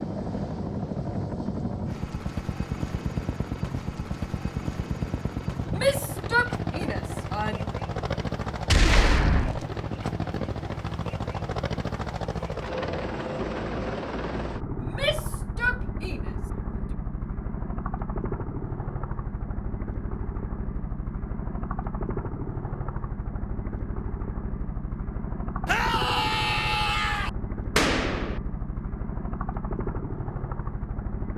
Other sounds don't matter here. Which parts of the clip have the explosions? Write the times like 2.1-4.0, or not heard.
8.7-9.7, 27.8-28.4.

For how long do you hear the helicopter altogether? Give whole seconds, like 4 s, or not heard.
31 s.